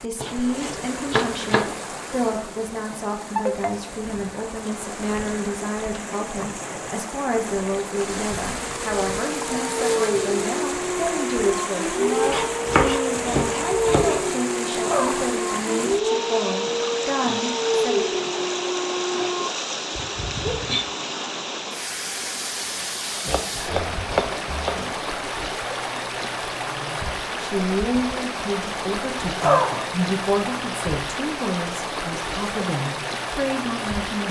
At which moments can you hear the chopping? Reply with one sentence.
You can hear the chopping from 0.2 to 1.8 s, from 12.3 to 14.2 s and from 23.2 to 24.9 s.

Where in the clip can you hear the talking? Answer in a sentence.
The talking can be heard from 0.0 to 18.2 s and from 26.6 to 34.2 s.